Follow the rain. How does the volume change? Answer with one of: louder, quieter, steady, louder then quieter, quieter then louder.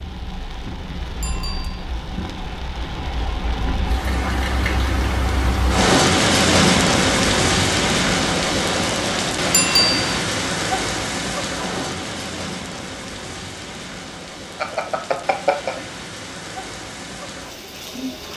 louder then quieter.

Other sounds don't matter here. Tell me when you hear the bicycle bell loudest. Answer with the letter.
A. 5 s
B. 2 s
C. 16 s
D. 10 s
D.